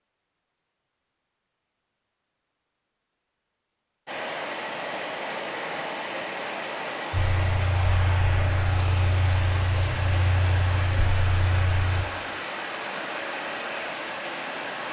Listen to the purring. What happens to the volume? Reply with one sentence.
The loudness of the purring stays about the same.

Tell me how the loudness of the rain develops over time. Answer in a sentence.
The volume of the rain stays about the same.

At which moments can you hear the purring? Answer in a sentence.
The purring can be heard from 7.1 to 12.1 s.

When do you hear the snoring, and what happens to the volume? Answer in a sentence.
You can't hear the snoring here.